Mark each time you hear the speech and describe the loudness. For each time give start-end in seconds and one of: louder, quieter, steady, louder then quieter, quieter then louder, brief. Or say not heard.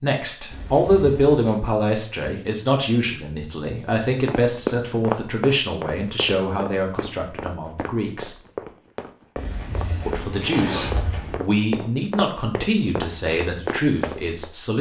0.0-8.3 quieter
10.1-14.7 steady.